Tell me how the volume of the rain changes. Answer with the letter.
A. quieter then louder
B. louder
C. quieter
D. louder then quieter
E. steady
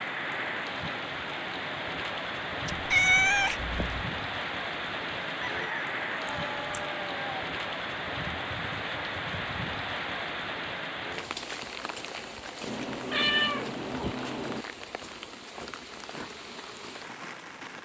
C.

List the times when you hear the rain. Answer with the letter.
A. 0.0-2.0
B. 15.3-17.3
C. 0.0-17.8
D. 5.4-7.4
C.